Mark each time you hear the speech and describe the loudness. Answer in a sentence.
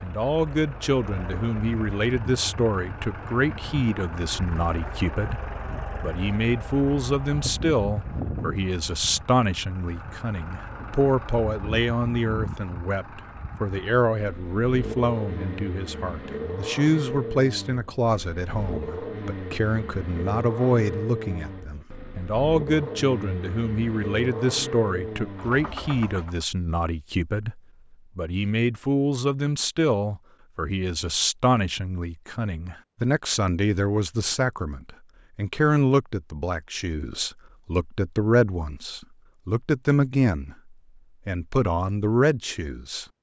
You can hear the speech from 0.0 to 43.0 s, at a steady volume.